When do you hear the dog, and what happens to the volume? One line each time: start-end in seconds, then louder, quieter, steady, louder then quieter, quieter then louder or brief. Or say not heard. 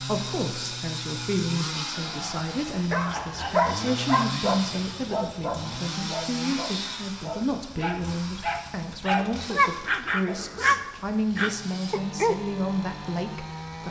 2.9-12.3 quieter then louder.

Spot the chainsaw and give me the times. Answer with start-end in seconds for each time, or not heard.
0.0-13.8.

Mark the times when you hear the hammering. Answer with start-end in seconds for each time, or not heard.
not heard.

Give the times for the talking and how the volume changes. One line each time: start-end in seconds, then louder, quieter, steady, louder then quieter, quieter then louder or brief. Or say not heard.
0.0-13.8 steady.